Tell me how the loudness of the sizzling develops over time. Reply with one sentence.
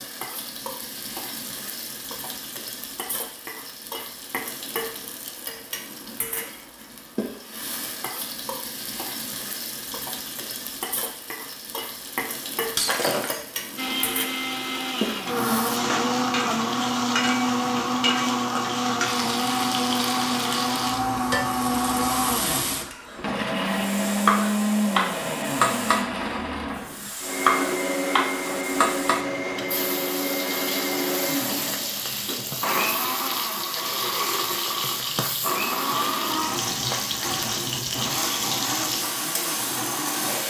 The volume of the sizzling goes up.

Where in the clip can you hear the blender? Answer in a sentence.
You can hear the blender from 13.8 to 40.4 s.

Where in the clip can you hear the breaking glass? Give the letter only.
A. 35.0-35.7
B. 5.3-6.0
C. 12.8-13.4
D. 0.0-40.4
C.